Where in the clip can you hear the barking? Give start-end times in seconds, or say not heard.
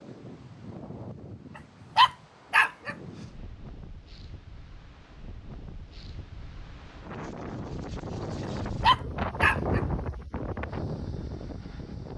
1.9-3.0, 8.8-9.8.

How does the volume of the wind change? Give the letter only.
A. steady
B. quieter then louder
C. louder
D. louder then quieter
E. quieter
C.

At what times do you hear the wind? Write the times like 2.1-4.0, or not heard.
0.0-12.1.